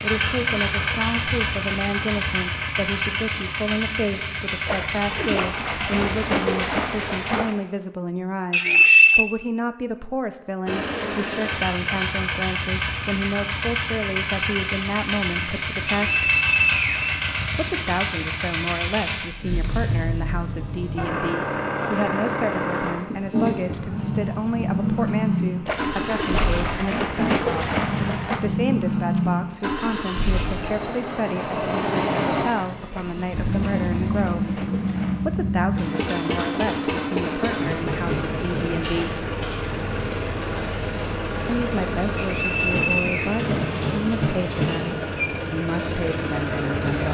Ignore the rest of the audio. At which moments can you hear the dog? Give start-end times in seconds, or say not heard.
not heard.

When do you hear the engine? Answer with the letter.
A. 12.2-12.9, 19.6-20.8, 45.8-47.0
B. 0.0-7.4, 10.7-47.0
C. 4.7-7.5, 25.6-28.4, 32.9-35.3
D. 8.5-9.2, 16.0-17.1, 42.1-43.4
B.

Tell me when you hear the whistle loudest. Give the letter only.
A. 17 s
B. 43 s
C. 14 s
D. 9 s
D.